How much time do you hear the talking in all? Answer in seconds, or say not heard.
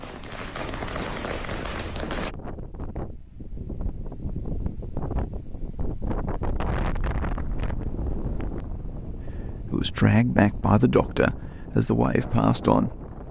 4 s.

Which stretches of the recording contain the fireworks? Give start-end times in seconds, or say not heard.
0.0-2.4.